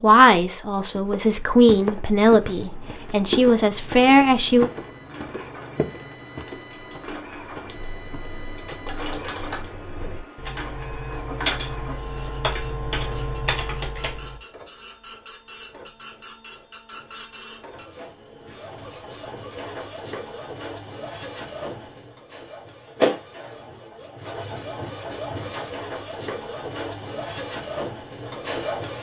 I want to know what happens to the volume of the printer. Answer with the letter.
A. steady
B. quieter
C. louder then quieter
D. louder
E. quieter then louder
D.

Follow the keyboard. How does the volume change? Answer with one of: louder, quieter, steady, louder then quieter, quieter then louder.
louder.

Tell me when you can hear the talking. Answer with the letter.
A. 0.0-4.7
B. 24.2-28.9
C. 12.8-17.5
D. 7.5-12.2
A.